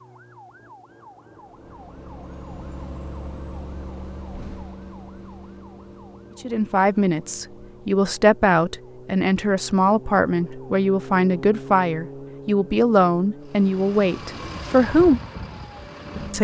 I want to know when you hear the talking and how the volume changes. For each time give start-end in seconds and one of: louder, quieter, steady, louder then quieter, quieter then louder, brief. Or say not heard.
6.4-15.2 steady.